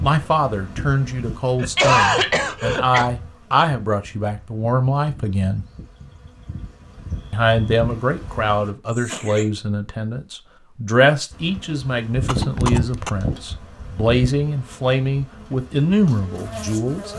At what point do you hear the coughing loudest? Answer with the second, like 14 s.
2 s.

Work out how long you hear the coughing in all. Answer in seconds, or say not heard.
3 s.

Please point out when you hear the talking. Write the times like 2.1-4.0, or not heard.
0.0-5.7, 7.3-17.1.